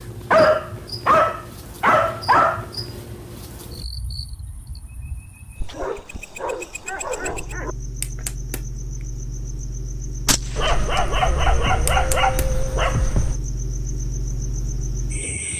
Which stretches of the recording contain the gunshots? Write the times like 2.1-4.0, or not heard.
10.2-11.1.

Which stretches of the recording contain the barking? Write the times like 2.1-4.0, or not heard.
0.3-2.6, 5.7-7.8, 10.6-13.4.